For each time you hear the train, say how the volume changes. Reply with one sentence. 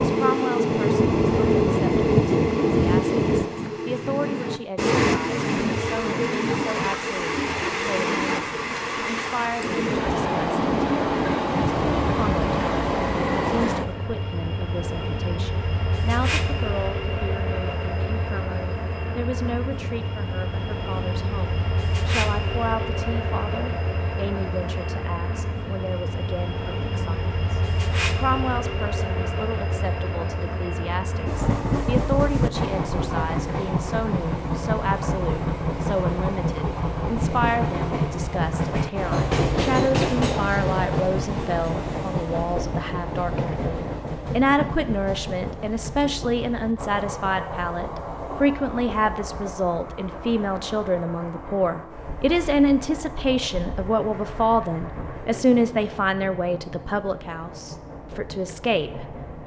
The train can be heard from 0.0 to 59.4 s, getting quieter.